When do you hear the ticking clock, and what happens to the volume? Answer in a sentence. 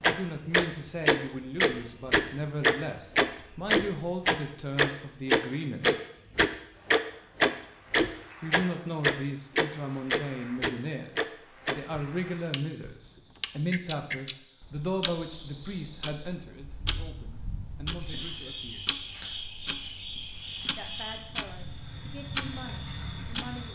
You can hear the ticking clock from 0.0 to 23.6 s, getting quieter.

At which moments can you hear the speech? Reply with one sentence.
The speech can be heard from 0.0 to 5.9 s, from 8.4 to 18.9 s and from 20.8 to 23.7 s.